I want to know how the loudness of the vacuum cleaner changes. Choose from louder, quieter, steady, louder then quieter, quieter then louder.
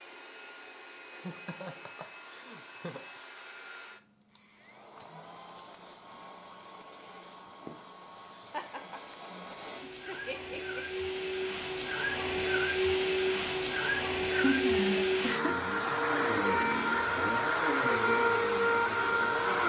louder.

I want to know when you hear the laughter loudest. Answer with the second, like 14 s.
15 s.